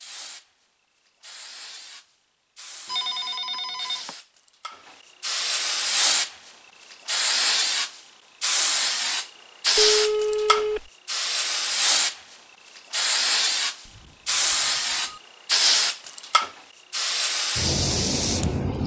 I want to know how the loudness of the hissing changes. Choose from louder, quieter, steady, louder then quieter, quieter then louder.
louder.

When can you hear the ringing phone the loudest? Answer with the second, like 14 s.
10 s.